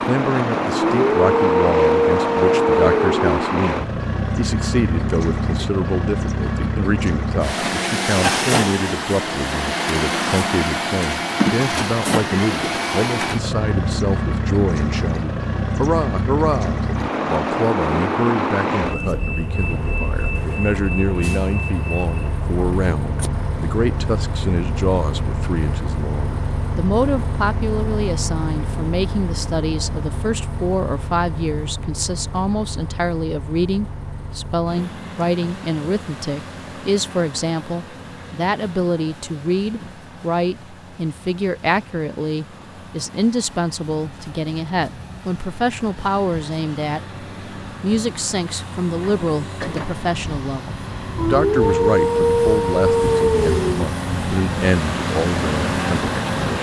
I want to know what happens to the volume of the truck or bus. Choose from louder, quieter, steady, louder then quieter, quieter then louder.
quieter then louder.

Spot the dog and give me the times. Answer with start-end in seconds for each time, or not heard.
0.8-3.3, 51.1-53.9.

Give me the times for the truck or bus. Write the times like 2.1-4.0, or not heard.
0.0-56.5.